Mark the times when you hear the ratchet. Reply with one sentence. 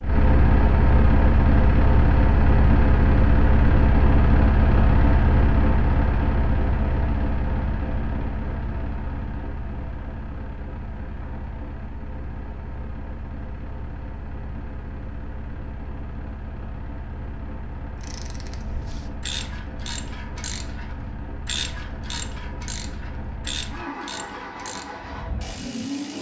The ratchet can be heard from 18.0 to 26.1 s.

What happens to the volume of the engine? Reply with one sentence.
The volume of the engine goes down.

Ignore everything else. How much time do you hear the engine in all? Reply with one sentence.
The engine can be heard for 26 seconds in total.